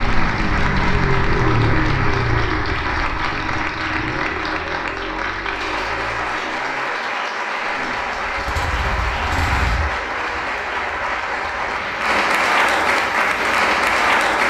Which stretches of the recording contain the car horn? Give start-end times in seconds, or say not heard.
not heard.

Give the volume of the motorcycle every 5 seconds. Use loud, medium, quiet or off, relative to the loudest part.
loud, medium, quiet.